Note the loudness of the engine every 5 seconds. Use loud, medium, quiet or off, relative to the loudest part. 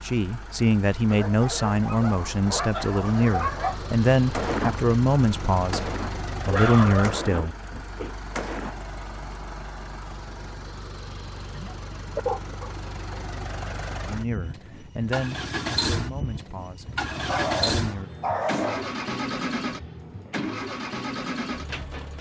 medium, medium, medium, loud, loud.